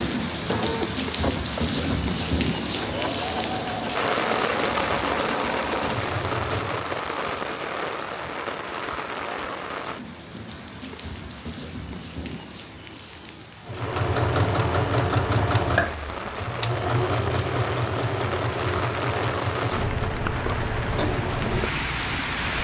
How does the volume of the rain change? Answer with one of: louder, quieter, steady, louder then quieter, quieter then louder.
quieter then louder.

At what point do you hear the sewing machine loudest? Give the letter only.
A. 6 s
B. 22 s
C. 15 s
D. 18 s
C.